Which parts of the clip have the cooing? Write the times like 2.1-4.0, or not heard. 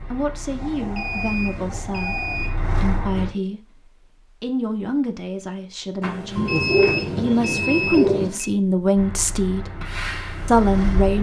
0.5-2.5, 6.3-8.3.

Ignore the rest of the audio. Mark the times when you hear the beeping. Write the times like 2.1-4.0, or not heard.
0.9-2.5, 6.0-8.5.